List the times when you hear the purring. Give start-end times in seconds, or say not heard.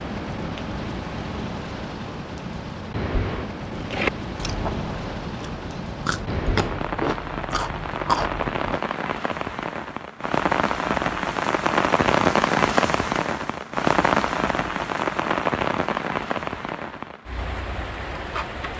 not heard.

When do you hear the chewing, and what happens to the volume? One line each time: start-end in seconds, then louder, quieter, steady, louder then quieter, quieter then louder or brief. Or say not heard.
3.7-8.8 quieter then louder.